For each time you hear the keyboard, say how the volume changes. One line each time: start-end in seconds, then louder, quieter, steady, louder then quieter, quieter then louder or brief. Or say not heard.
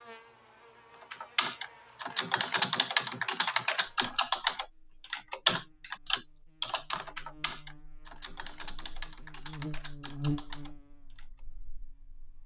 1.0-11.2 quieter.